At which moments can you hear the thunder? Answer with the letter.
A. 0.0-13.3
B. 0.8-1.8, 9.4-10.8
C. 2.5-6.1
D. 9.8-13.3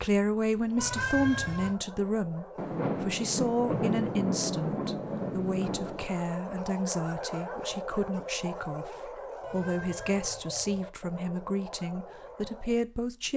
C.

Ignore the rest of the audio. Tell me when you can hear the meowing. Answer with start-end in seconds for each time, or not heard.
0.8-1.8, 9.4-10.8.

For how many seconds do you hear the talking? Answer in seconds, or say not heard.
13 s.